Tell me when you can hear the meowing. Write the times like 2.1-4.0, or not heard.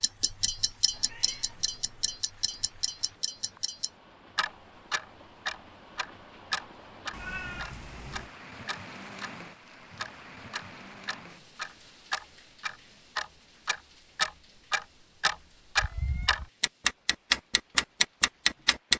0.9-2.2, 7.1-8.3, 15.8-16.5.